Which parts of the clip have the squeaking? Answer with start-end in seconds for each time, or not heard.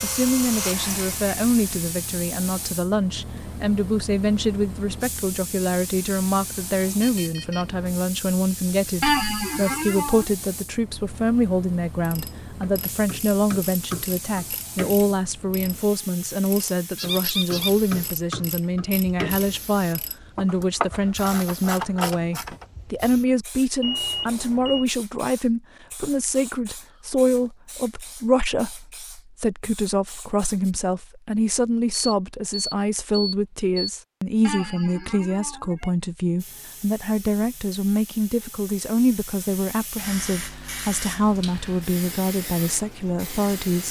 9.0-10.2, 16.9-17.7, 34.4-36.0.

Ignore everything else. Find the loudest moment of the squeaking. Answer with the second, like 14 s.
9 s.